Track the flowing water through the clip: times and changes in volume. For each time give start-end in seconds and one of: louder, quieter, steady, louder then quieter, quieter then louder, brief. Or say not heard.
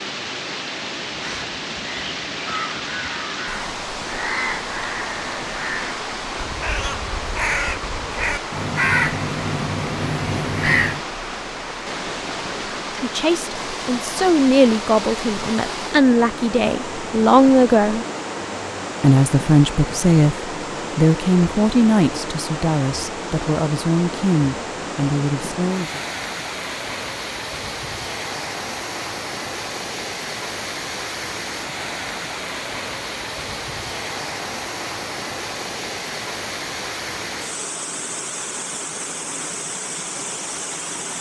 0.0-41.1 steady.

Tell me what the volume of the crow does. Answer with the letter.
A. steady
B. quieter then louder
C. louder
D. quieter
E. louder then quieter
C.